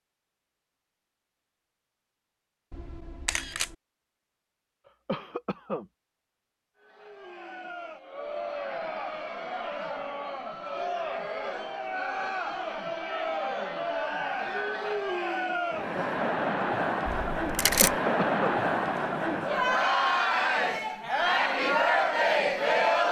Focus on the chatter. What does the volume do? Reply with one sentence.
The volume of the chatter goes up.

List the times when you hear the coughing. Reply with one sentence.
You can hear the coughing from 5.0 to 5.8 s and from 17.9 to 18.6 s.